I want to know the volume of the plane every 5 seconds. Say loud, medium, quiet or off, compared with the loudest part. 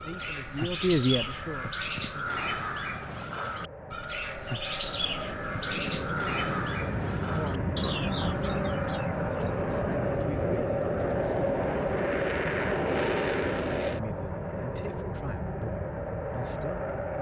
quiet, loud, loud, medium.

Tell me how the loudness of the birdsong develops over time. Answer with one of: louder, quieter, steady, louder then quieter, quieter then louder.
steady.